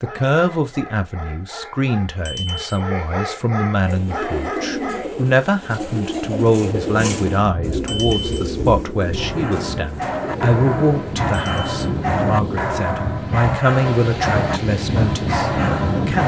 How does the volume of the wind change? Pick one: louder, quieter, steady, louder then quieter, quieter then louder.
louder.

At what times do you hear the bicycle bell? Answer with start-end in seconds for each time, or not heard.
2.2-2.8, 7.8-8.4, 11.3-11.8.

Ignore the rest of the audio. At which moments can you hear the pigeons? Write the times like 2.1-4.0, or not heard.
3.8-12.9.